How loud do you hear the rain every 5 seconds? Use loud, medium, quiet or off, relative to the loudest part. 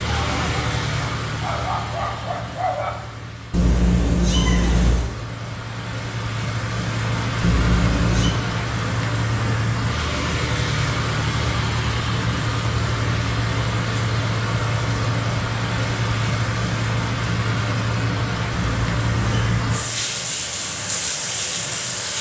medium, loud, loud, loud, loud.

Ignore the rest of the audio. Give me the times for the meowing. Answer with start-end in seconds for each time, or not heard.
3.5-5.1, 7.4-8.3, 18.8-19.6.